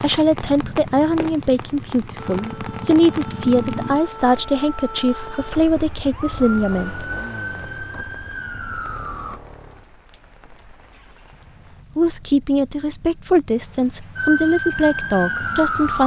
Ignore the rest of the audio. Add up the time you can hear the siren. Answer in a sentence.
The siren can be heard for 9 seconds in total.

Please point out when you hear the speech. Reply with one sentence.
You can hear the speech from 0.0 to 7.0 s and from 11.9 to 16.0 s.